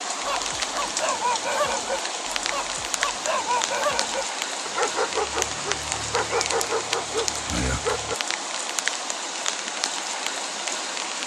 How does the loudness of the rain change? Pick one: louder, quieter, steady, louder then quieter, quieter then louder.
steady.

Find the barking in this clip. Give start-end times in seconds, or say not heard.
0.2-8.2.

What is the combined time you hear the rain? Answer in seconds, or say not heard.
11 s.